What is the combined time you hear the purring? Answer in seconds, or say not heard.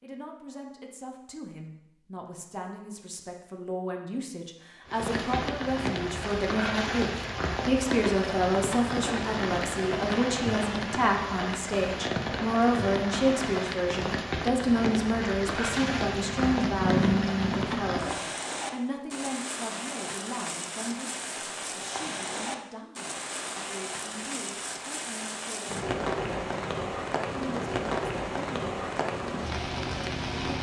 2 s.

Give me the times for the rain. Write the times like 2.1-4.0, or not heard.
4.8-30.5.